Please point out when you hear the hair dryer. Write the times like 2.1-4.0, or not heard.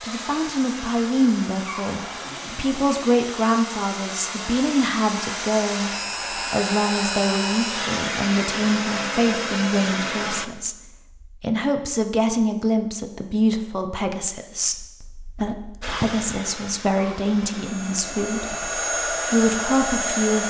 0.0-10.5, 15.8-20.4.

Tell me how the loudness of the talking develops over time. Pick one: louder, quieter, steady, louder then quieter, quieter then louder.
steady.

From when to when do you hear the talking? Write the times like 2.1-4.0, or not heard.
0.0-20.4.